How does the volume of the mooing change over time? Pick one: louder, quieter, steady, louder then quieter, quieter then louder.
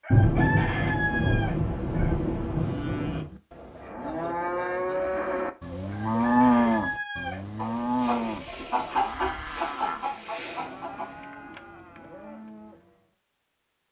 louder then quieter.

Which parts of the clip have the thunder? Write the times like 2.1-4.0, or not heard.
0.1-3.2.